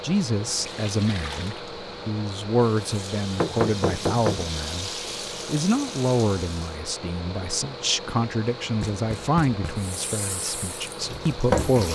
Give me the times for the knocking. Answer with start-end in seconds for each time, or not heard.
3.4-4.5, 8.8-9.9.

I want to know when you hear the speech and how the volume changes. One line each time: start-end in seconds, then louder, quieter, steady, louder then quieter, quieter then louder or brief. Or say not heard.
0.0-11.8 steady.